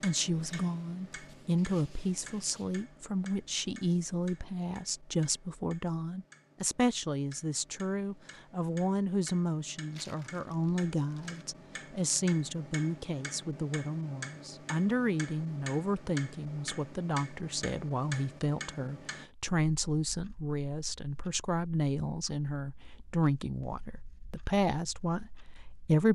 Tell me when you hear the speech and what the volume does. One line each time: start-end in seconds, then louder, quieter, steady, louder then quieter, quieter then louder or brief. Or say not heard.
0.0-26.1 steady.